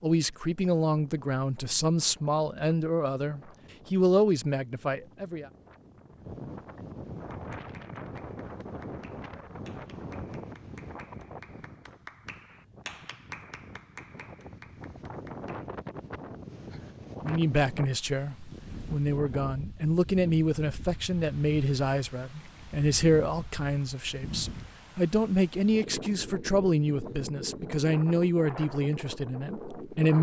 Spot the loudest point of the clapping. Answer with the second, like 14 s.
13 s.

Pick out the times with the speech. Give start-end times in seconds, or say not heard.
0.0-5.5, 17.2-30.1.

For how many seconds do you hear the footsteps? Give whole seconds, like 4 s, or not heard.
not heard.